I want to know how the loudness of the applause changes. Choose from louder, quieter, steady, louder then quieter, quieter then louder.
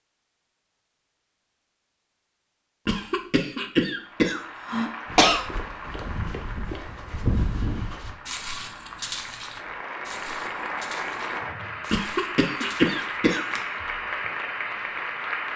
quieter then louder.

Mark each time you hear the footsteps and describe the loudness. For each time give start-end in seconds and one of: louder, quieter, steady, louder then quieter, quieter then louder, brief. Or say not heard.
5.0-13.7 louder then quieter.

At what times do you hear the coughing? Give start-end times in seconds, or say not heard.
2.9-5.5, 11.9-13.4.